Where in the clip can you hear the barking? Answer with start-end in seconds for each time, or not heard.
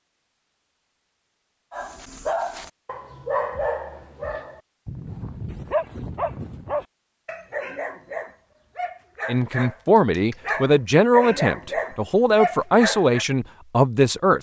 1.7-13.2.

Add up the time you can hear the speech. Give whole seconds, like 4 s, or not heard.
5 s.